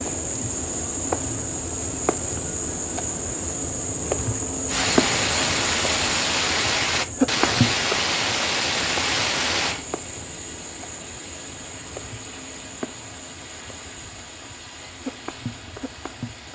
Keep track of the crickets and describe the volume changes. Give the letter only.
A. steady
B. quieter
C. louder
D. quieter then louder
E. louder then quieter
B.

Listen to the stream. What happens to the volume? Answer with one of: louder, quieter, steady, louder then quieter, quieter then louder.
quieter.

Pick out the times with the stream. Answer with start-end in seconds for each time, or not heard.
4.7-16.5.